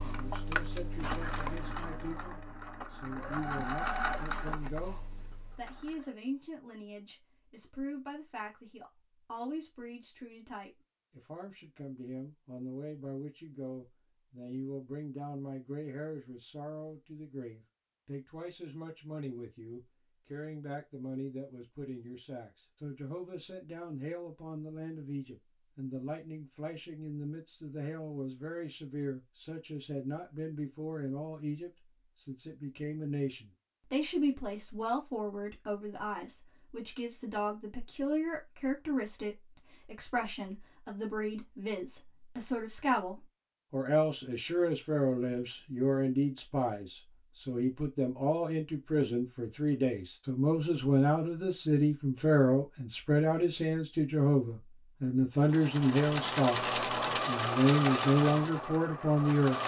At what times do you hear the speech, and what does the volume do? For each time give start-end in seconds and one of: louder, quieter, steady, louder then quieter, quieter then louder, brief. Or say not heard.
0.0-56.6 louder
57.2-59.6 brief.